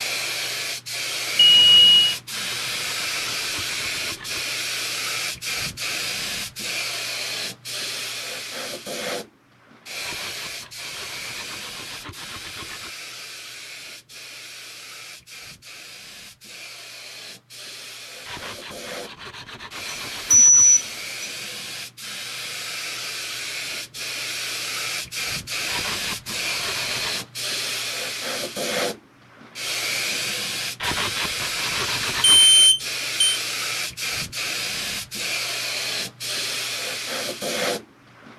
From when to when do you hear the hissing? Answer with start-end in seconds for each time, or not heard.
0.0-38.3.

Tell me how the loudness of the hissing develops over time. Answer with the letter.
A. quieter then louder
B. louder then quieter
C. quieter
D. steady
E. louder
A.